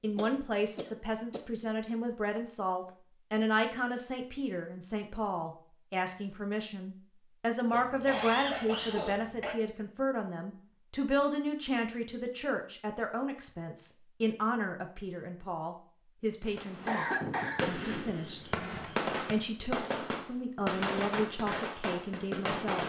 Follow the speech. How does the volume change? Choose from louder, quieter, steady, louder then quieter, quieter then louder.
steady.